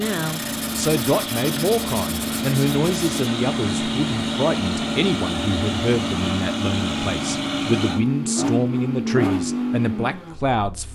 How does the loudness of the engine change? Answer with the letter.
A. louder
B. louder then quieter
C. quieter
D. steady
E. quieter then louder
D.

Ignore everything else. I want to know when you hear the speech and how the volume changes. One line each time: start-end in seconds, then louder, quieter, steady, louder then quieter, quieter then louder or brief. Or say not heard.
0.0-10.9 steady.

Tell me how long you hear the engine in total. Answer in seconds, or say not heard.
11 s.